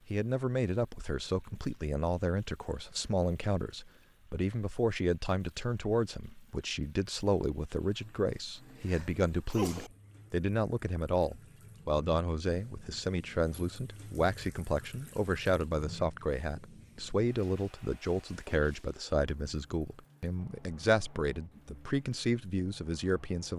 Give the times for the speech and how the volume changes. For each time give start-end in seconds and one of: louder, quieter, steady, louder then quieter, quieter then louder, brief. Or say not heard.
0.1-23.5 steady.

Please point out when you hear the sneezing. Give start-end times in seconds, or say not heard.
8.6-9.9.